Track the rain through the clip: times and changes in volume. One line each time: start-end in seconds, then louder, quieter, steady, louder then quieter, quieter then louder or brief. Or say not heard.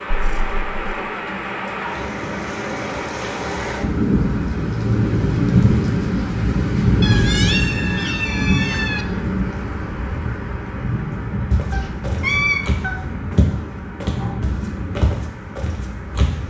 0.0-16.4 louder then quieter.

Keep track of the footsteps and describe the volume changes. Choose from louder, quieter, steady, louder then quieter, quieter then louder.
louder then quieter.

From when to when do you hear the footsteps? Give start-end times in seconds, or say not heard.
11.5-16.4.